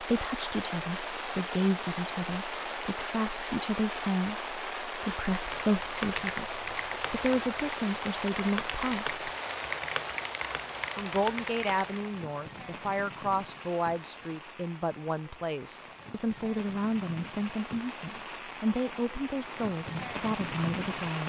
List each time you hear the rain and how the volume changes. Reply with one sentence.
You can hear the rain from 0.0 to 21.2 s, getting quieter then louder.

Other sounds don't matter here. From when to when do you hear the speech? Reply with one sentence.
The speech can be heard from 0.0 to 9.2 s and from 10.9 to 21.2 s.